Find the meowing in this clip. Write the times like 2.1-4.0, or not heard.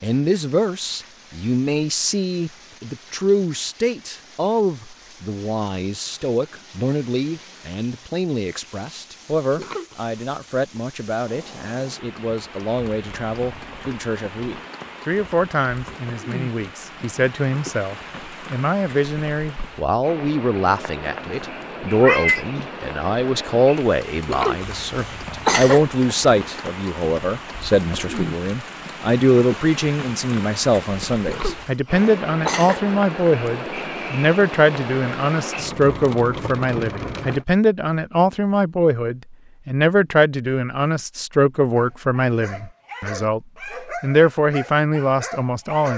21.2-22.6.